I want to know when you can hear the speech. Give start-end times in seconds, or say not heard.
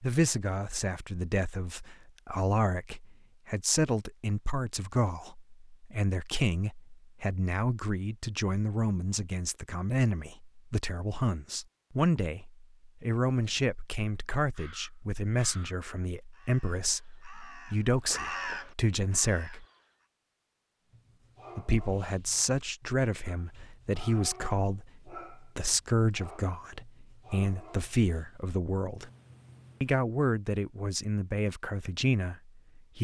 0.0-19.6, 21.6-29.1, 29.8-32.9.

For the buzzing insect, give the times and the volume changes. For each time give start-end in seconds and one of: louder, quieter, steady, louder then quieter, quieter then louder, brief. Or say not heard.
not heard.